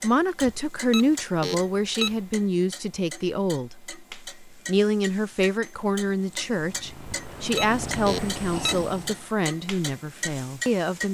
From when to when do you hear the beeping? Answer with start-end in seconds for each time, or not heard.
0.4-2.2, 7.0-8.9.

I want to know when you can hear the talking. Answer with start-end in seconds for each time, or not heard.
0.0-11.0.